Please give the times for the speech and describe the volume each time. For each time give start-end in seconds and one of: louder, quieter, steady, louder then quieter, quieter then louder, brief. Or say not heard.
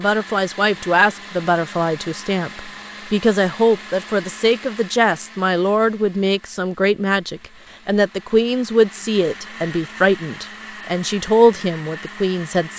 0.0-12.7 steady.